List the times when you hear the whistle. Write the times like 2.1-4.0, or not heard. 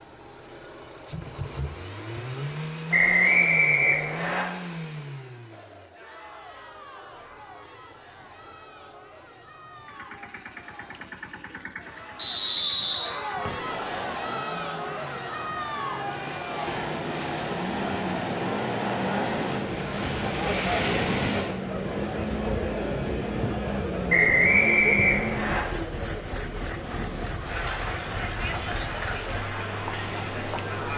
2.9-4.5, 12.2-13.7, 24.1-25.6.